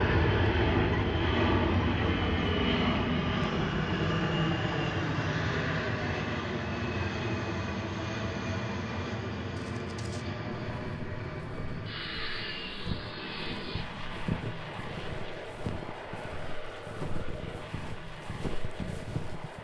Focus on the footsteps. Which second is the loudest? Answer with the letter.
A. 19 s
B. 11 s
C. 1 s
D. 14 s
D.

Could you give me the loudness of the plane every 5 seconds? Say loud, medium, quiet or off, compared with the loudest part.
loud, medium, medium, quiet.